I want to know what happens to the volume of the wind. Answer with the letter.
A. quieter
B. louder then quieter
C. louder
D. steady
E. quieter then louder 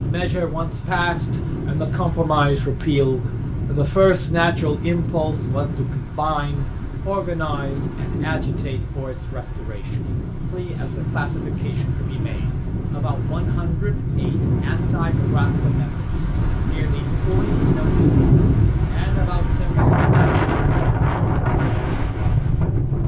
C.